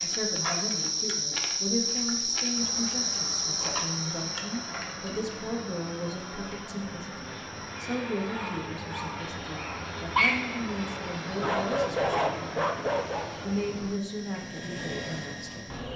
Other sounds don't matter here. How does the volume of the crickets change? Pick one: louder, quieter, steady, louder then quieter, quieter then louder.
quieter.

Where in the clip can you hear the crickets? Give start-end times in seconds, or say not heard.
0.0-15.9.